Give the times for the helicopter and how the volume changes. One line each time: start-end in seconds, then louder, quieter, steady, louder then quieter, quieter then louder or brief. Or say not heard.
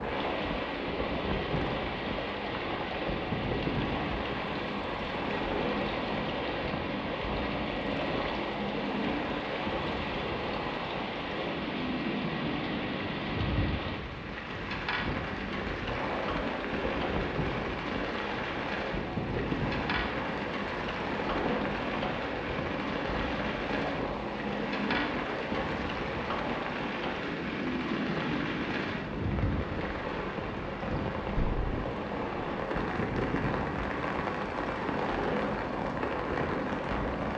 0.0-37.3 steady.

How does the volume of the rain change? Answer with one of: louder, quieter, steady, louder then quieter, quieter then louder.
steady.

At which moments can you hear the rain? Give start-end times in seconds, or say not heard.
0.0-37.3.